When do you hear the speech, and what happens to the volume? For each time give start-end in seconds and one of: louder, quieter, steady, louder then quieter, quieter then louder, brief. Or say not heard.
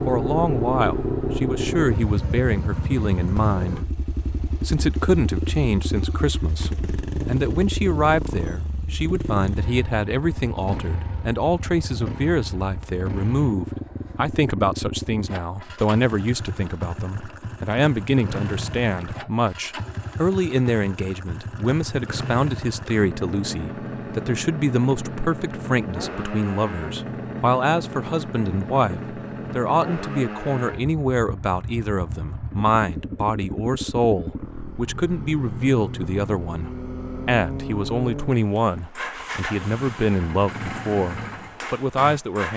0.1-42.5 steady.